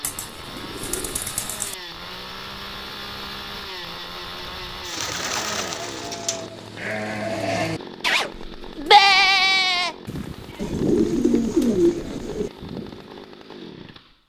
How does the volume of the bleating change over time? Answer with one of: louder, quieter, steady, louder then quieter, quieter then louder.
louder then quieter.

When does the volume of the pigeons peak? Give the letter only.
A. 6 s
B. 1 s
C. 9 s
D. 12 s
D.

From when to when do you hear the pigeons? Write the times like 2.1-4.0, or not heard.
0.0-1.8, 4.8-6.5, 10.6-12.5.